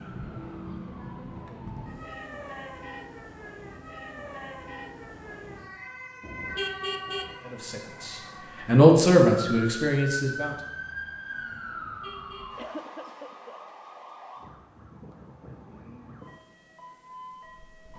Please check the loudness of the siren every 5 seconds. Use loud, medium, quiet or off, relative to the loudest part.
loud, loud, loud, medium.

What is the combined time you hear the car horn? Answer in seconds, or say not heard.
2 s.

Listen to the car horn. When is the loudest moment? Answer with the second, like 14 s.
7 s.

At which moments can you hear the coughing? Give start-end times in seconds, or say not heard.
12.6-13.6.